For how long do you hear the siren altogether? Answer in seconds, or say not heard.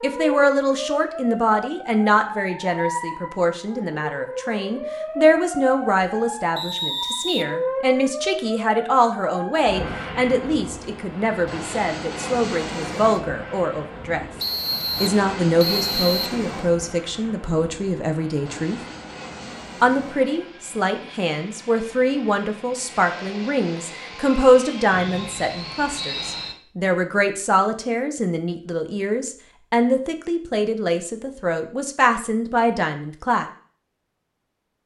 10 s.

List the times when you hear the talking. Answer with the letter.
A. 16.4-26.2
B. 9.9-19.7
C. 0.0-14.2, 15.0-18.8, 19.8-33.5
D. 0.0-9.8
C.